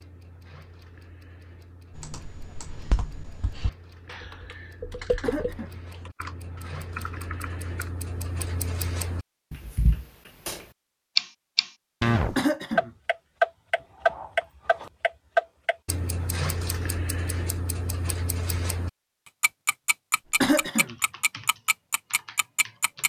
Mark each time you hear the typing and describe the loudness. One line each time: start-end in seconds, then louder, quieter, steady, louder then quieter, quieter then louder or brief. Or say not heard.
1.9-7.9 louder then quieter
20.2-23.0 brief.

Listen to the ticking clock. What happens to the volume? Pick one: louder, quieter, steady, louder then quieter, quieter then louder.
louder then quieter.